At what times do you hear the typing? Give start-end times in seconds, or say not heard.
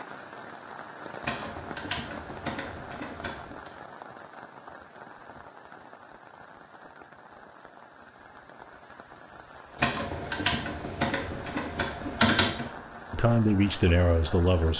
1.2-3.7, 9.8-12.7.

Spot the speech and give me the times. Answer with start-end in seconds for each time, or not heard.
13.1-14.7.